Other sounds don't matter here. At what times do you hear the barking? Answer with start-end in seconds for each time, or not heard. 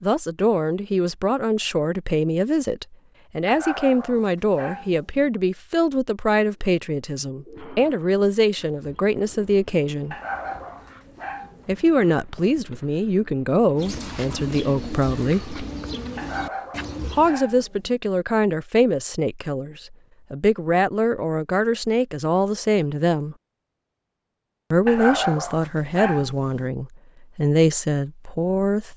3.5-5.3, 10.1-11.9, 16.1-18.0, 24.9-26.7.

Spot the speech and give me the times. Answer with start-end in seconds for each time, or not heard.
0.0-10.2, 11.7-15.6, 17.0-23.4, 24.7-28.9.